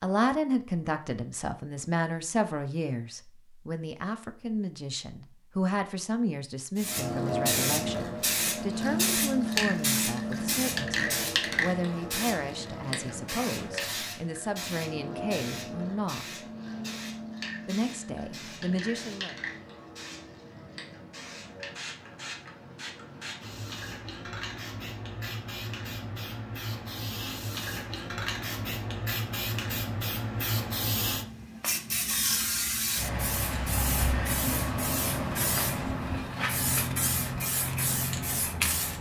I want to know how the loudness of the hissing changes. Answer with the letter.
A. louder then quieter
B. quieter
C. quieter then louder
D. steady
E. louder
C.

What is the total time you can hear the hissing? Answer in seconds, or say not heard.
32 s.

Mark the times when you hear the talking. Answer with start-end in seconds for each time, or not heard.
0.0-16.4, 17.6-19.4.